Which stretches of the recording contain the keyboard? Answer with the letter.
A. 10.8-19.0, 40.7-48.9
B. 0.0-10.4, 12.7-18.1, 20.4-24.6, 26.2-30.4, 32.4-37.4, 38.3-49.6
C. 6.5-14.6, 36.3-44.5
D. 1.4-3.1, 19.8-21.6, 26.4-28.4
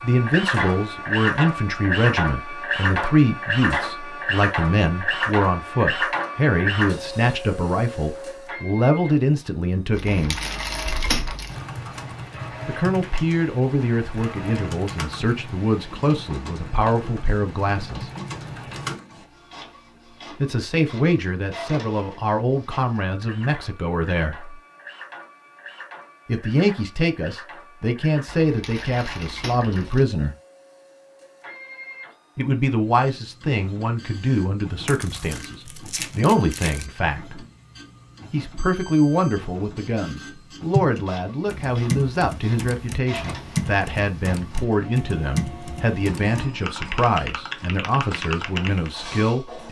A.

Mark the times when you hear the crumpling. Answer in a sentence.
The crumpling can be heard from 9.9 to 11.7 s, from 28.2 to 30.1 s and from 34.9 to 36.9 s.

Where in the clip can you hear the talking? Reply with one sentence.
You can hear the talking from 0.0 to 10.4 s, from 12.7 to 18.1 s, from 20.4 to 24.6 s, from 26.2 to 30.4 s, from 32.4 to 37.4 s and from 38.3 to 49.6 s.